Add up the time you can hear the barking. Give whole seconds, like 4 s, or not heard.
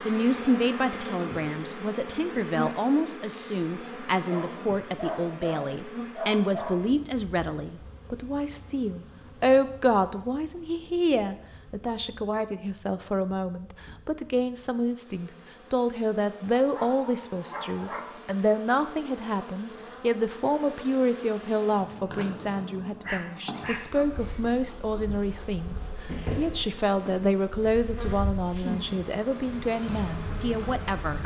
6 s.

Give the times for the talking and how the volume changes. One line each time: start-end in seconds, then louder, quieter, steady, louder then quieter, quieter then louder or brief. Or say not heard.
0.0-31.2 steady.